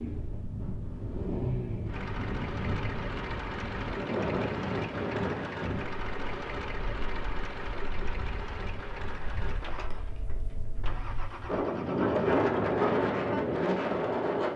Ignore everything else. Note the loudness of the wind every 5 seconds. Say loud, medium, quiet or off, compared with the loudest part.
medium, medium, loud.